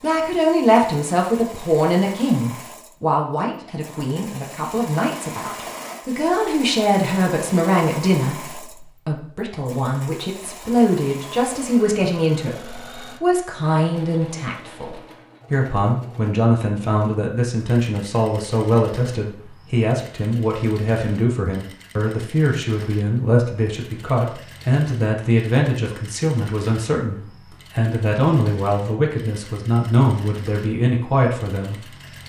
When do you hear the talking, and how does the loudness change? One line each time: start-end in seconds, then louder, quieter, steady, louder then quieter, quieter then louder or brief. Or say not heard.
0.0-31.9 steady.